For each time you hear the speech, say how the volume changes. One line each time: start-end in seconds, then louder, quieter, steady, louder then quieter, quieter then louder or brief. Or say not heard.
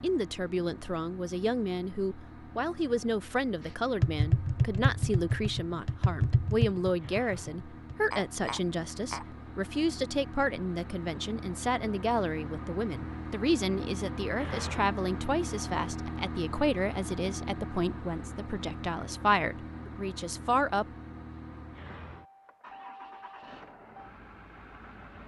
0.0-20.9 steady.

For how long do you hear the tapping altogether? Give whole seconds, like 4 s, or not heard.
5 s.